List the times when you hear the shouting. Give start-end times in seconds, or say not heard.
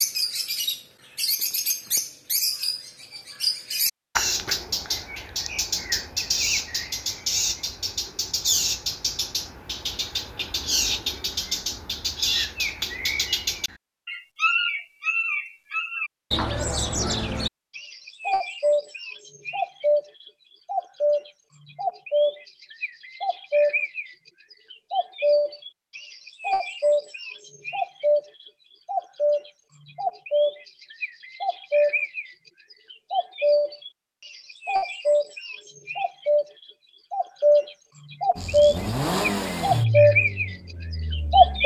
not heard.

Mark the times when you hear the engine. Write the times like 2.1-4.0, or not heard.
38.4-41.6.